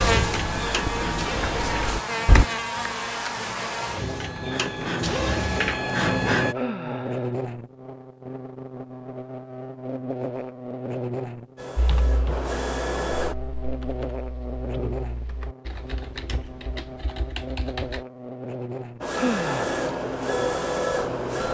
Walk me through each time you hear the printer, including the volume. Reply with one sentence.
The printer can be heard from 0.0 to 6.5 s, getting quieter then louder; briefly from 11.6 to 13.3 s; and briefly from 19.0 to 21.4 s.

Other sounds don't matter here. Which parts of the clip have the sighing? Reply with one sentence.
The sighing can be heard from 6.5 to 7.3 s and from 19.1 to 19.8 s.